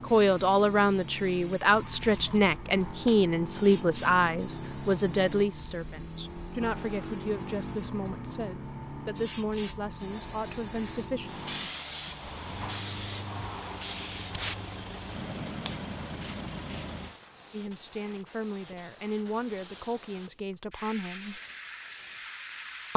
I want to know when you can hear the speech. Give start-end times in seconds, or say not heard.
0.0-11.4, 17.5-21.4.